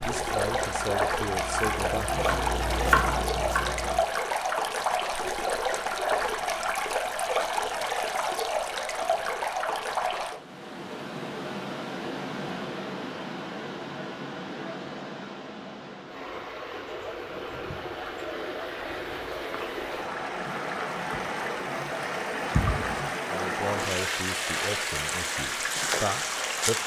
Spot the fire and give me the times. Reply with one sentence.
The fire can't be heard in this clip.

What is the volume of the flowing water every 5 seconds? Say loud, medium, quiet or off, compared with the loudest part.
loud, loud, medium, medium, loud, loud.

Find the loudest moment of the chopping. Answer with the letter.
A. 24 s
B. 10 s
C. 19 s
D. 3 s
D.